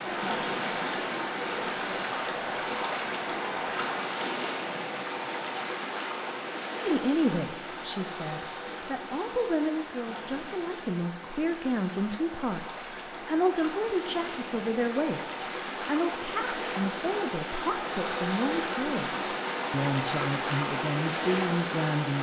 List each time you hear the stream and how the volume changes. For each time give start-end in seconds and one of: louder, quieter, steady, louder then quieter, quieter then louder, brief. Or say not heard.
0.0-22.1 quieter then louder.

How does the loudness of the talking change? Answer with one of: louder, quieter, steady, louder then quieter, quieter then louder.
steady.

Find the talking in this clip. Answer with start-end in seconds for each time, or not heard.
6.8-22.1.